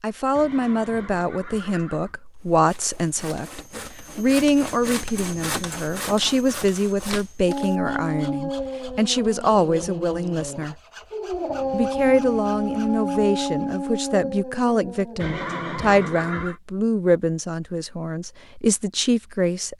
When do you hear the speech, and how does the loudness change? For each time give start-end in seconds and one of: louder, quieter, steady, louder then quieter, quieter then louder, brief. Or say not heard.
0.0-10.8 steady
11.7-19.7 steady.